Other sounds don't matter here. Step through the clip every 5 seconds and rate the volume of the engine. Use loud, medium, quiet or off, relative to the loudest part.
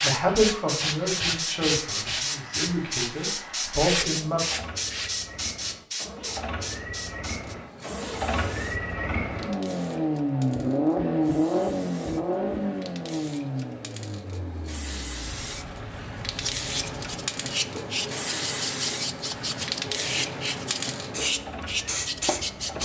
quiet, medium, loud, quiet, quiet.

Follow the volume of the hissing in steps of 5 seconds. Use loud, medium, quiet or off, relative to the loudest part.
loud, medium, quiet, loud, loud.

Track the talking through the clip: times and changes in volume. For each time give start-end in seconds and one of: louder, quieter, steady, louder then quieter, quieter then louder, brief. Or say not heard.
0.0-4.4 quieter then louder.